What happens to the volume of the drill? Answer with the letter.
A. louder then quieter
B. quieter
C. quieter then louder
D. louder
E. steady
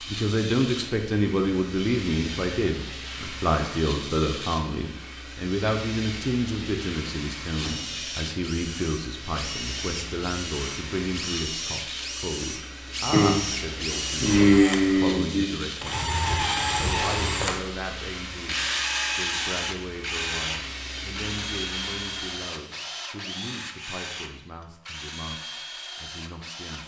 A.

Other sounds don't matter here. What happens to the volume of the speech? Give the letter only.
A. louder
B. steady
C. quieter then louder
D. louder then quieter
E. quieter
E.